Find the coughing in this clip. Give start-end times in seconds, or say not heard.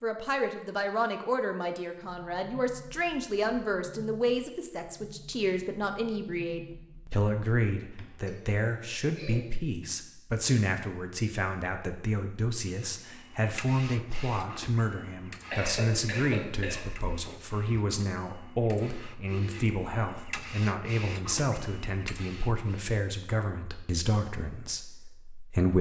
8.1-9.4, 15.5-16.9.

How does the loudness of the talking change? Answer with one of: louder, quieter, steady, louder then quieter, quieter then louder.
steady.